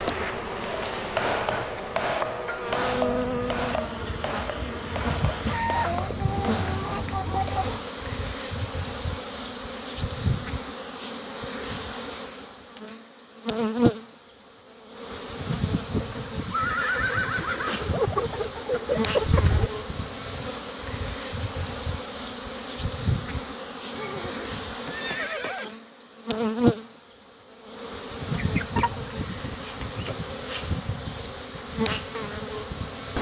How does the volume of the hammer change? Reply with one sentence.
The volume of the hammer goes down.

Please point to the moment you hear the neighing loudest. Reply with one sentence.
The volume of the neighing peaks at 17 seconds.